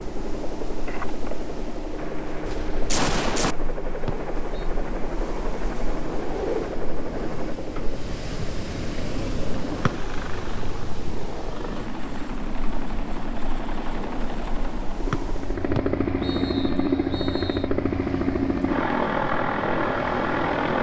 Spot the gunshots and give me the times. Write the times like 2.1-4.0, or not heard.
2.5-3.5.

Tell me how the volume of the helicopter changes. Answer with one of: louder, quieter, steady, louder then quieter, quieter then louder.
louder.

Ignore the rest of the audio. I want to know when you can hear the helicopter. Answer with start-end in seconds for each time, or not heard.
0.0-20.7.